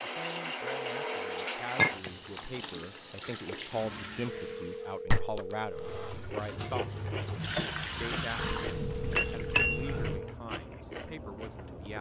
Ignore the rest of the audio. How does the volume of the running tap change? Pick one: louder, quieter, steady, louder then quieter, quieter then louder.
quieter then louder.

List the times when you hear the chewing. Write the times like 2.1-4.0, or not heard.
5.8-11.9.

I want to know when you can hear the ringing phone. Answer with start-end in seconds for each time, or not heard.
0.6-1.5, 4.2-6.2, 8.3-10.3.